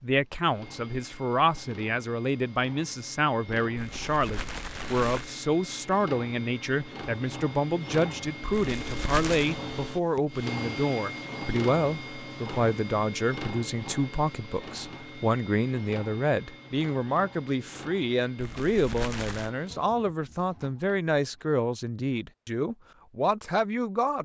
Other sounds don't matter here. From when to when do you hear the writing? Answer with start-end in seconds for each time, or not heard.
not heard.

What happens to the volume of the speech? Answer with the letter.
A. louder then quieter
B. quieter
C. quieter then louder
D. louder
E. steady
E.